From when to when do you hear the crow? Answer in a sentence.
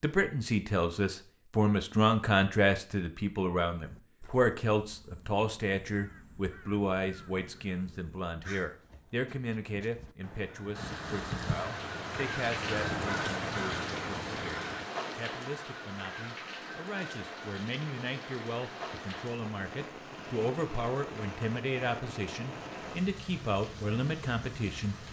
The crow can be heard from 3.7 to 14.9 s.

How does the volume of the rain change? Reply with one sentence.
The loudness of the rain goes down.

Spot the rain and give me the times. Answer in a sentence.
You can hear the rain from 10.7 to 25.0 s.